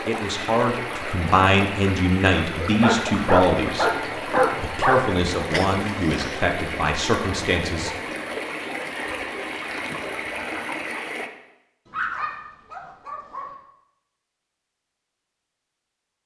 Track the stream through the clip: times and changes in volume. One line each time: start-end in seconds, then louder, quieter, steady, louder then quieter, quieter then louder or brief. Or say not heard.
0.0-11.3 steady.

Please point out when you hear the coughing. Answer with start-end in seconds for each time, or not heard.
5.5-6.5.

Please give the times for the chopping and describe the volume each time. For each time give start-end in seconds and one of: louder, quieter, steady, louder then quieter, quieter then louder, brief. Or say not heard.
not heard.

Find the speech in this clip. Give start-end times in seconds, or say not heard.
0.1-3.9, 4.5-8.0.